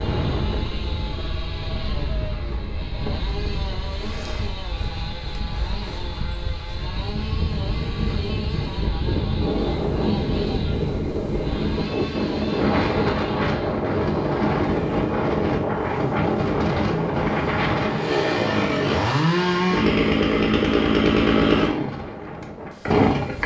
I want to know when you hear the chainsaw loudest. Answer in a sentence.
The loudest moment of the chainsaw is at 21 seconds.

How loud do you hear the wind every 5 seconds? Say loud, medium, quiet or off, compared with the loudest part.
medium, medium, loud, loud, quiet.